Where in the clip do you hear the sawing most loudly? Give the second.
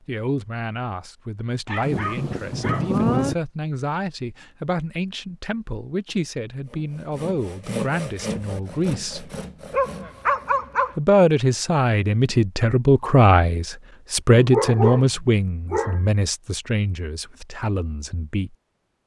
8 s.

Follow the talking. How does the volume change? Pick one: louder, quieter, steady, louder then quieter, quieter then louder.
louder then quieter.